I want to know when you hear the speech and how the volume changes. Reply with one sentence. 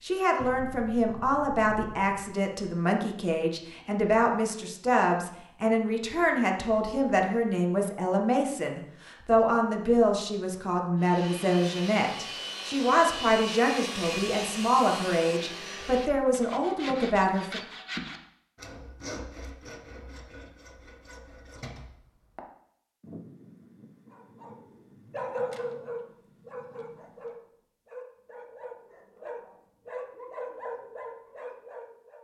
The speech can be heard from 0.0 to 17.6 s, at a steady volume.